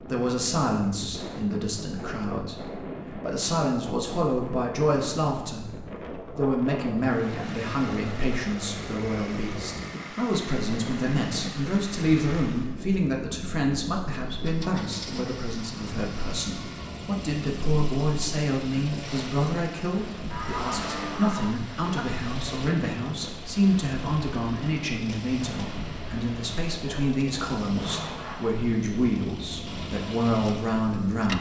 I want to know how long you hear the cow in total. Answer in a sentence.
You can hear the cow for 2 seconds altogether.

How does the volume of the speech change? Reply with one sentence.
The volume of the speech stays about the same.